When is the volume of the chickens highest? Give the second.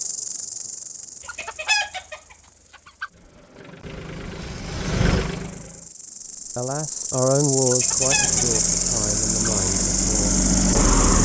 2 s.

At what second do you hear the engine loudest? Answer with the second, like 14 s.
11 s.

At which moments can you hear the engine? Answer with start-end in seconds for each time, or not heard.
3.1-6.0, 7.8-11.2.